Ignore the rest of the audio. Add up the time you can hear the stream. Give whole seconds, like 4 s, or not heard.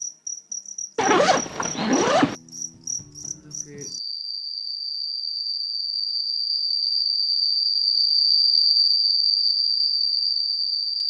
not heard.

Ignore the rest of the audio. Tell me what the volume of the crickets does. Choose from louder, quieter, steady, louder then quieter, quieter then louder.
louder.